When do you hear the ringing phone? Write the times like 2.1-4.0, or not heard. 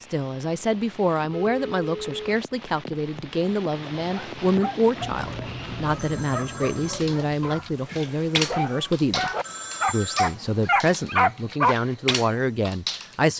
1.4-2.2, 5.0-7.0, 9.4-10.3.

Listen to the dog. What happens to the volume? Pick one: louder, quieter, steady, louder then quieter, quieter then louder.
louder.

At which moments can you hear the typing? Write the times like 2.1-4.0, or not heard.
6.8-13.3.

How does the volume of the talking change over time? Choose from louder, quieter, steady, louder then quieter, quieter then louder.
steady.